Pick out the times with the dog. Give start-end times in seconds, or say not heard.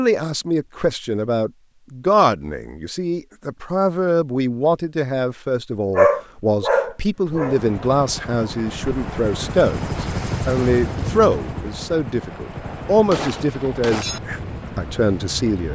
6.0-7.6.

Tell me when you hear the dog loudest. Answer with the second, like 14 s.
6 s.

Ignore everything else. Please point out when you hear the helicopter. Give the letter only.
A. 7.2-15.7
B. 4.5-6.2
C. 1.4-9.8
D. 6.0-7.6
A.